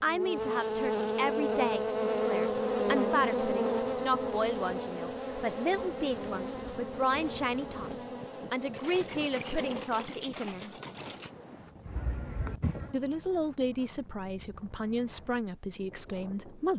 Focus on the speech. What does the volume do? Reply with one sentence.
The loudness of the speech stays about the same.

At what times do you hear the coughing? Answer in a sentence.
You can't hear the coughing here.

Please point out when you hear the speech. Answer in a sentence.
The speech can be heard from 0.0 to 10.8 s and from 12.9 to 16.7 s.